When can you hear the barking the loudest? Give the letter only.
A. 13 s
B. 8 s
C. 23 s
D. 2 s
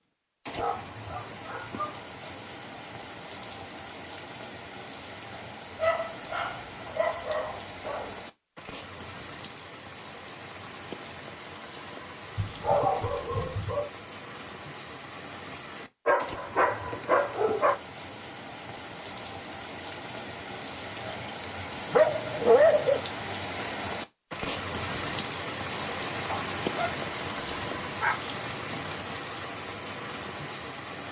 C.